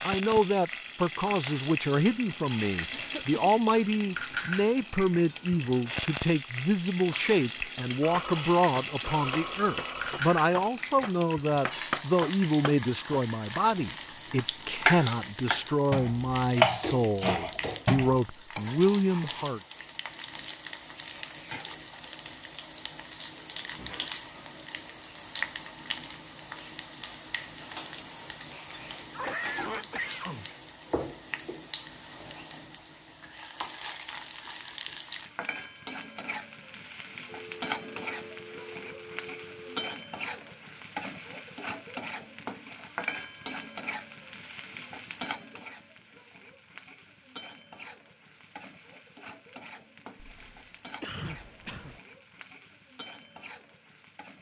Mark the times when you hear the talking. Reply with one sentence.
The talking can be heard from 0.0 to 19.6 s.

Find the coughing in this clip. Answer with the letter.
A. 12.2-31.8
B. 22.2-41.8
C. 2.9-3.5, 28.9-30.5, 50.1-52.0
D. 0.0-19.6
C.